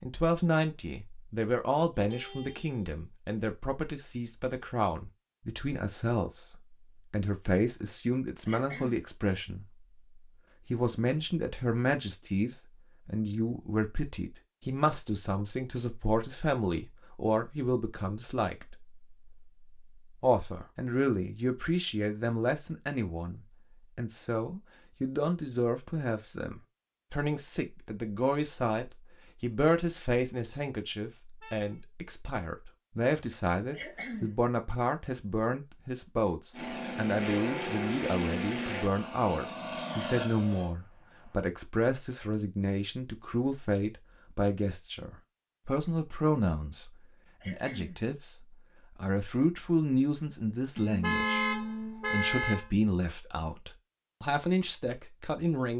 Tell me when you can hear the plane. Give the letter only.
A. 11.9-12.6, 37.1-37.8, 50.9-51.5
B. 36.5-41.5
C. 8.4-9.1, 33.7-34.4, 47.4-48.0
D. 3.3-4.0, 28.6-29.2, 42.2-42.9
B.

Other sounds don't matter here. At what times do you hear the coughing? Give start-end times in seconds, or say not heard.
8.4-9.1, 33.7-34.4, 47.4-48.0.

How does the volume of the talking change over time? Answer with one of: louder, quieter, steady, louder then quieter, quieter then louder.
steady.